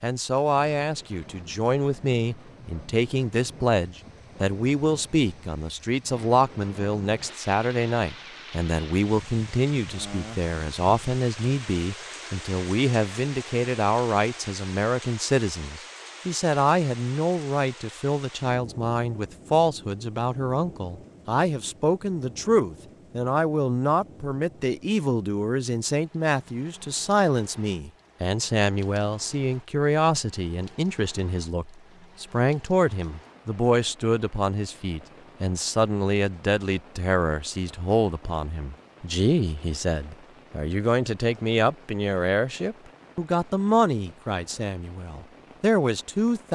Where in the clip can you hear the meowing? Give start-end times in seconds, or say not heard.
not heard.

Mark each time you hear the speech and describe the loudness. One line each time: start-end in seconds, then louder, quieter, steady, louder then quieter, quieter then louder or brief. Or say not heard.
0.0-46.5 steady.